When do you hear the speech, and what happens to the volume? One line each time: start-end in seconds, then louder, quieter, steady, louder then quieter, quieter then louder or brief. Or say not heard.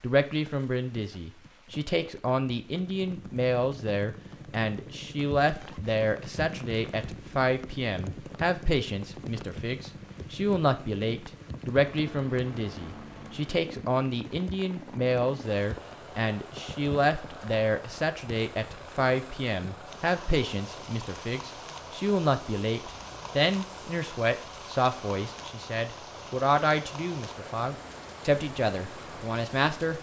0.0-29.9 steady.